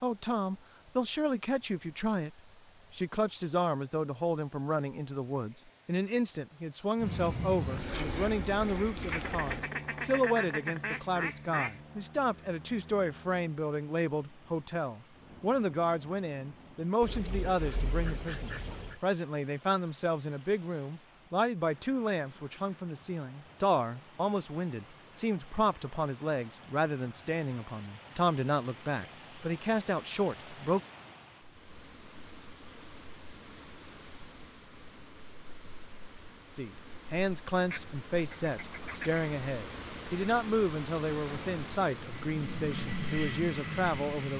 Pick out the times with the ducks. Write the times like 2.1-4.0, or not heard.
9.1-11.8, 17.0-19.0, 37.7-39.2.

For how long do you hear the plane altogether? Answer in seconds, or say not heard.
13 s.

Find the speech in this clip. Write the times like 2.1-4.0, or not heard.
0.0-30.8, 36.5-44.3.